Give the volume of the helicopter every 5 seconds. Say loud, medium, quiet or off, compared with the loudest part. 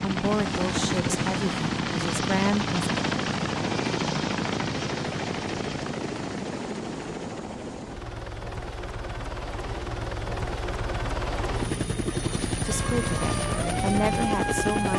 loud, medium, loud.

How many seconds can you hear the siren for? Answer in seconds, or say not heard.
2 s.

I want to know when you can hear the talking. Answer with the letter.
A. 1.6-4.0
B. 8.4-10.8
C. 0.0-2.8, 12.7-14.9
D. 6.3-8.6
C.